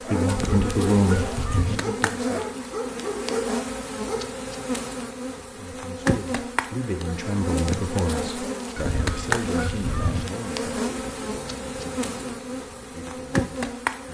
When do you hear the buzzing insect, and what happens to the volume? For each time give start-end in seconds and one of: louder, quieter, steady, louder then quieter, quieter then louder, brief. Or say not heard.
0.0-14.0 steady.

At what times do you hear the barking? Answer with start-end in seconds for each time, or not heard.
0.0-4.2.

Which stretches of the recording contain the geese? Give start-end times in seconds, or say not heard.
0.2-1.8, 8.8-10.2.